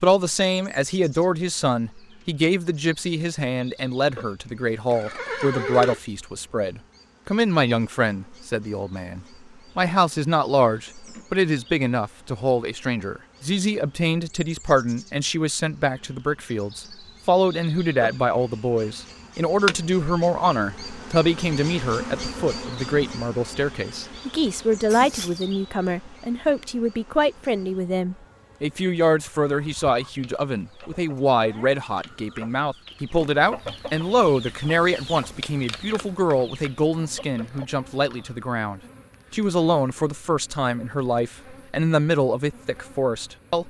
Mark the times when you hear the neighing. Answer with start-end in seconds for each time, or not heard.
4.9-6.0, 24.9-25.4.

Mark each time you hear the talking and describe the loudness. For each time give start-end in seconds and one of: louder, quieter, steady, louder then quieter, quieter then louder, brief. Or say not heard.
0.0-43.6 steady.